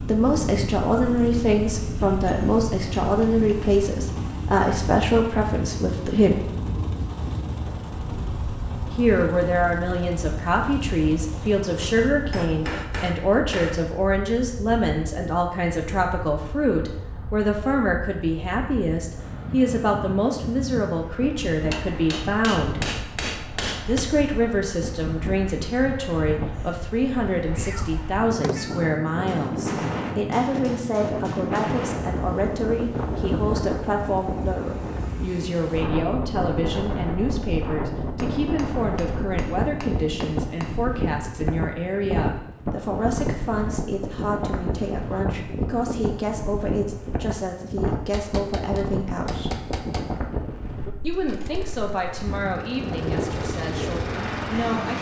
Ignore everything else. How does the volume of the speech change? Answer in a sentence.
The loudness of the speech goes down.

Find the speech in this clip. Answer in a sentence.
You can hear the speech from 0.1 to 6.5 s, from 8.9 to 22.8 s, from 23.9 to 49.6 s and from 51.0 to 54.9 s.